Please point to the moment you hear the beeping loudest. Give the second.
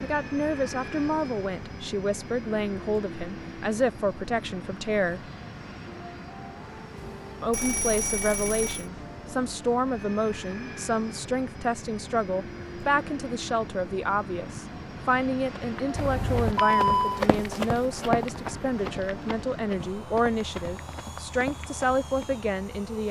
17 s.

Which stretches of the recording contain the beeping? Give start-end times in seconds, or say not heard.
7.5-8.8, 15.9-17.2.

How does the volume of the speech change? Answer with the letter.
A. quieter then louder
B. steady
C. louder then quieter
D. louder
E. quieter
B.